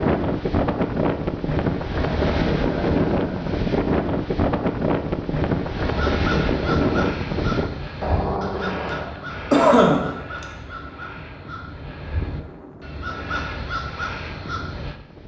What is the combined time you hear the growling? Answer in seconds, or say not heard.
3 s.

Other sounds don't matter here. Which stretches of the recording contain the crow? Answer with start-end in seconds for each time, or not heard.
5.8-14.9.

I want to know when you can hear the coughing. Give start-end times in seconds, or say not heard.
9.5-10.4.